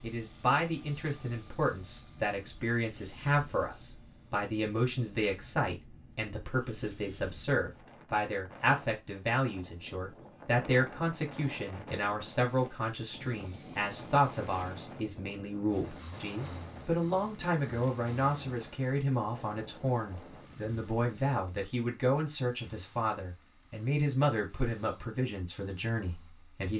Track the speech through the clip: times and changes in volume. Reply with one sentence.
The speech can be heard from 0.0 to 26.7 s, at a steady volume.